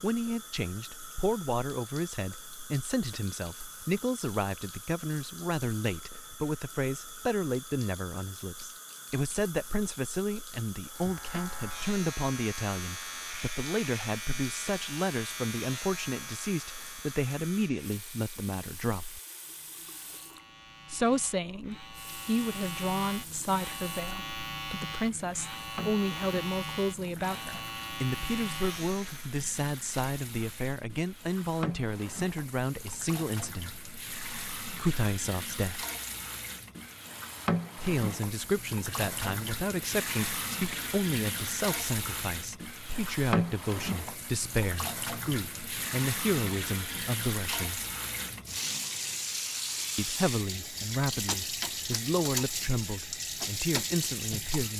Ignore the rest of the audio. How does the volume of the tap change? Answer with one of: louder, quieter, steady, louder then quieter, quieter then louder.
louder.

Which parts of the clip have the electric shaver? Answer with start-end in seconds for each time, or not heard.
10.8-29.4.